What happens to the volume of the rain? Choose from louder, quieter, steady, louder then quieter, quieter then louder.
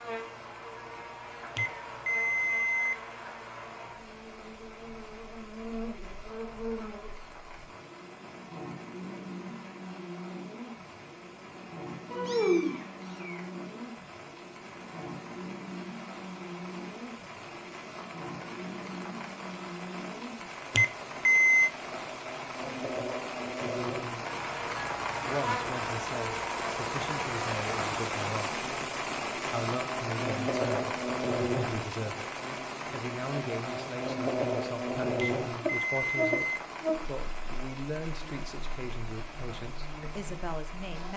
louder then quieter.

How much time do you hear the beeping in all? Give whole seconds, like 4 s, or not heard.
4 s.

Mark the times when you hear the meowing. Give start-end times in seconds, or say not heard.
12.1-13.4.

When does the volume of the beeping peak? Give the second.
21 s.